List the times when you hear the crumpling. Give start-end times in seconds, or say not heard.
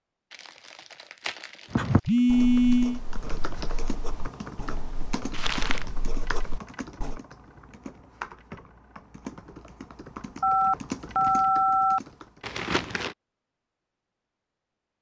0.3-2.1, 5.3-5.8, 12.4-13.2.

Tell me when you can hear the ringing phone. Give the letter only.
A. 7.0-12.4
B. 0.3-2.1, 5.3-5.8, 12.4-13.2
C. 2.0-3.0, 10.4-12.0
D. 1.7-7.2
C.